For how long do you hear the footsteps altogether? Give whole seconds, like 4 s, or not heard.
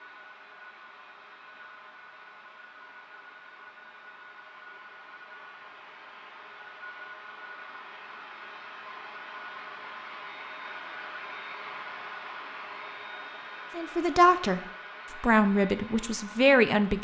not heard.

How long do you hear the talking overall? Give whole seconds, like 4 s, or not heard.
3 s.